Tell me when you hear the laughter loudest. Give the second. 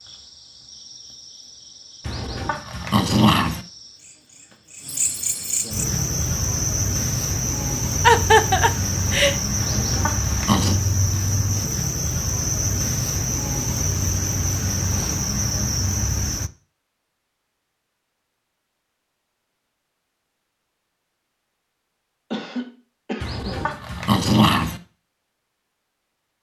8 s.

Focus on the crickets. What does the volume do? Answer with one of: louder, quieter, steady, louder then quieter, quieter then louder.
louder.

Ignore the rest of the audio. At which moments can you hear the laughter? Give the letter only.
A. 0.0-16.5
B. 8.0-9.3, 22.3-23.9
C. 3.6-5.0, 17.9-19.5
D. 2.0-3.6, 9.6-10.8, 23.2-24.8
B.